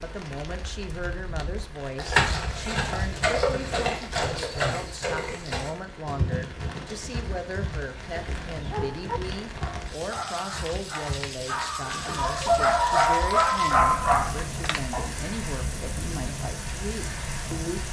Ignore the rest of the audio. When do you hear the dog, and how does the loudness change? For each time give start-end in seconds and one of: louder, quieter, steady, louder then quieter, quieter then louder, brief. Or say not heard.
8.6-15.1 louder.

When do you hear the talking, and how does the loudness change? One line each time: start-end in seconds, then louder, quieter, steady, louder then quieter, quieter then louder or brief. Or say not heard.
0.0-17.8 steady.